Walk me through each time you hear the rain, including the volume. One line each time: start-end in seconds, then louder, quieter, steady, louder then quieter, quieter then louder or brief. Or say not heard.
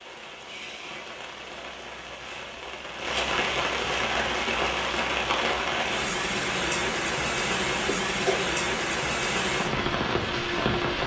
0.0-11.0 louder.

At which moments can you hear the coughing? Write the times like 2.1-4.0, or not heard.
7.8-8.4.